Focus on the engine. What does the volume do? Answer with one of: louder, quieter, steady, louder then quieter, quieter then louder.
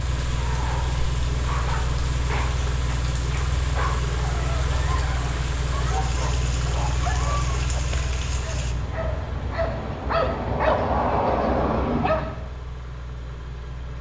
quieter.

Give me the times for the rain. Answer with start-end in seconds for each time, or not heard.
0.0-8.8.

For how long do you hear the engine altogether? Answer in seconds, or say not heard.
14 s.